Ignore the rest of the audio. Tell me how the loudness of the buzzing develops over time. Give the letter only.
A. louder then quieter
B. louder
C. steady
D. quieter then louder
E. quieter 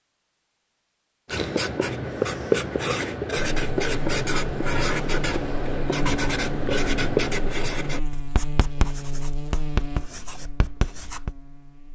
E.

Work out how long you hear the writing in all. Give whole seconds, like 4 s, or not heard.
10 s.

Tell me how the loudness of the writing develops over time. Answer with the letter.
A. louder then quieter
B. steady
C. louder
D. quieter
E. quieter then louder
D.